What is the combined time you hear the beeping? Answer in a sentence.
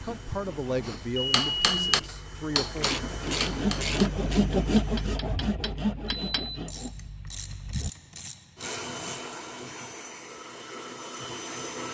You can hear the beeping for 2 seconds altogether.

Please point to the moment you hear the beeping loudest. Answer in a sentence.
The volume of the beeping peaks at 2 seconds.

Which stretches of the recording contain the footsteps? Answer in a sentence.
You can't hear the footsteps here.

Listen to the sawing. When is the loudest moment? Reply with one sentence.
The volume of the sawing peaks at 5 seconds.